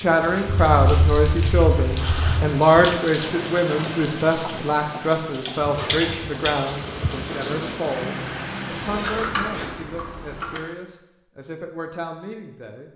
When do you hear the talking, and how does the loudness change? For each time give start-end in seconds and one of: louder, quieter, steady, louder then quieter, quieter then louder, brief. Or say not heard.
0.0-12.9 quieter.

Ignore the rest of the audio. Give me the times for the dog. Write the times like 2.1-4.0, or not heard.
not heard.